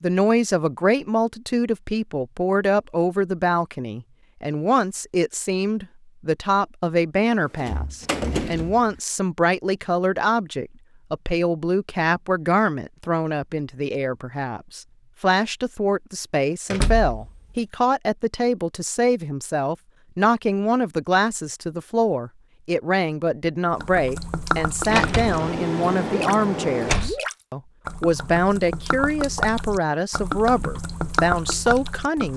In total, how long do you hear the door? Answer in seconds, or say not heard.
5 s.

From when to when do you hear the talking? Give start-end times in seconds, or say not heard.
0.0-32.3.